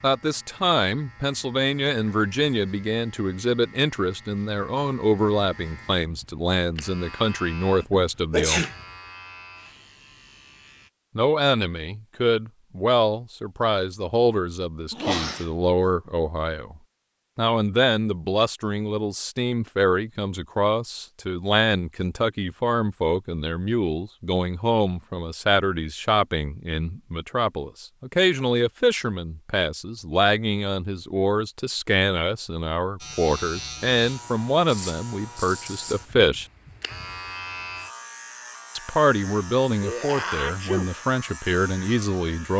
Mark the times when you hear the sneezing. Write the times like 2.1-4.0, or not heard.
7.8-8.8, 14.9-15.4, 39.8-40.9.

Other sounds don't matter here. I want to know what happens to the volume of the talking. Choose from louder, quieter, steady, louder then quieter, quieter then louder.
steady.